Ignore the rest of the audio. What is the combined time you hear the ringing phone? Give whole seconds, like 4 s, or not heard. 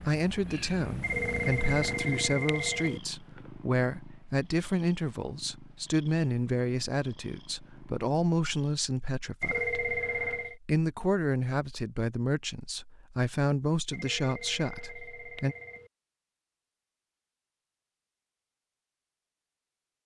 5 s.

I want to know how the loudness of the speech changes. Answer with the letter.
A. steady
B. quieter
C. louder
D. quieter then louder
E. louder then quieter
A.